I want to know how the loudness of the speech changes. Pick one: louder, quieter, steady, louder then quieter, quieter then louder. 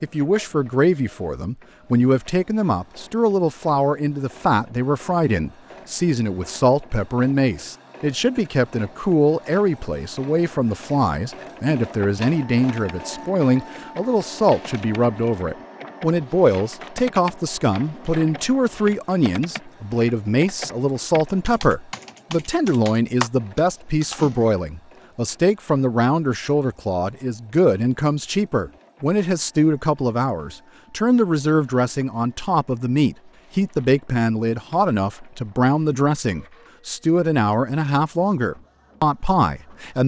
steady.